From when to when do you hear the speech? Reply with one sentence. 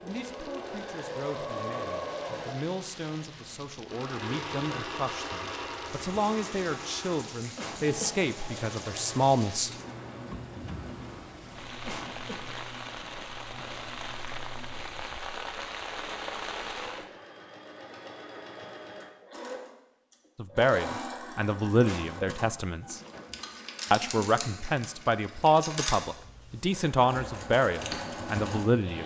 The speech can be heard from 0.0 to 9.7 s, from 20.4 to 23.0 s and from 23.9 to 29.0 s.